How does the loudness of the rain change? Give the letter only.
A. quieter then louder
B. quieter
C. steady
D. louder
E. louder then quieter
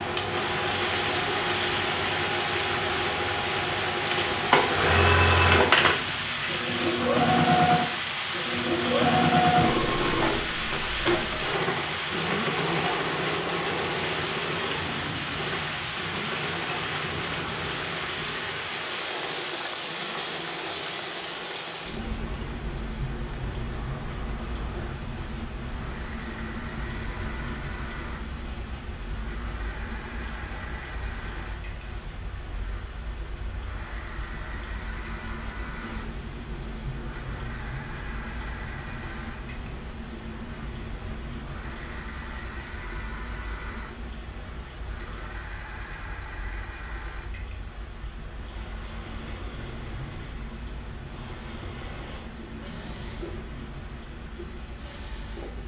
B.